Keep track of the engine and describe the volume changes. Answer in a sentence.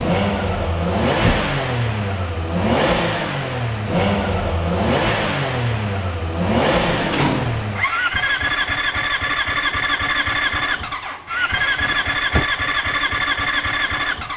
The loudness of the engine stays about the same.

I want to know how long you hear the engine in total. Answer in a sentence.
You can hear the engine for 14 seconds altogether.